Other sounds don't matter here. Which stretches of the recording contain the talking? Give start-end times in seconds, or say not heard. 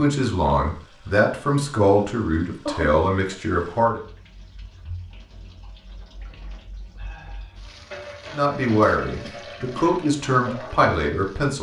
0.0-4.0, 8.3-11.5.